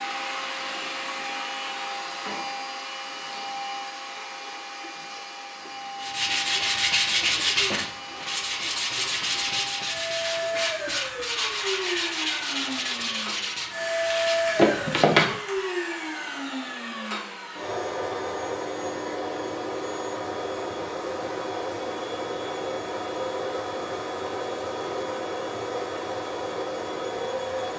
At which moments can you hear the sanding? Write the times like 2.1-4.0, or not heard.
6.0-15.6.